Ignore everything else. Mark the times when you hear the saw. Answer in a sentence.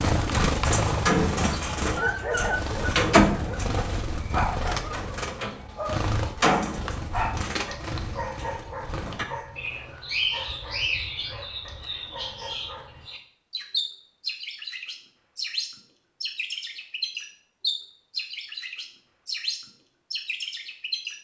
The saw can't be heard in this clip.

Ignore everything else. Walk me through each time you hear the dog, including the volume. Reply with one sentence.
The dog can be heard from 1.9 to 13.1 s, getting quieter.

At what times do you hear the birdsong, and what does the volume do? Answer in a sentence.
The birdsong can be heard from 0.0 to 21.1 s, getting quieter.